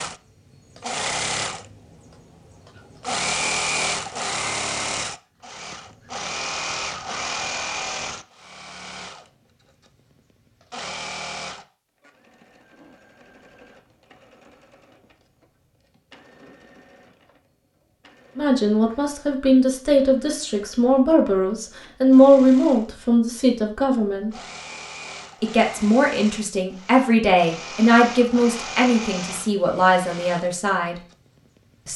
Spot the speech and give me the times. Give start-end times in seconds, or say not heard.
18.4-24.3, 25.4-30.9.